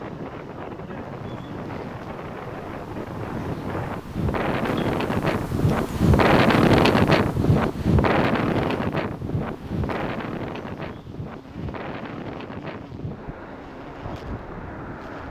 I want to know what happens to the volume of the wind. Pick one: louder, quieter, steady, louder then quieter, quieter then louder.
louder then quieter.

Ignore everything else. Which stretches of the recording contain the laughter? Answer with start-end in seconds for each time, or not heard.
not heard.